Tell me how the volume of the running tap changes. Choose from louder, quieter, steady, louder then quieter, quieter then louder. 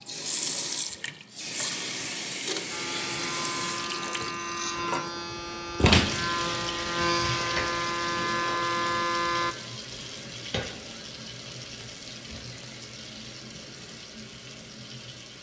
quieter.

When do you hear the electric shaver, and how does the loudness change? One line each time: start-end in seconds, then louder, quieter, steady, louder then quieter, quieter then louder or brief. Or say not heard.
2.7-9.6 louder.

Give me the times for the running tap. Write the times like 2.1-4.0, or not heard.
0.1-15.3.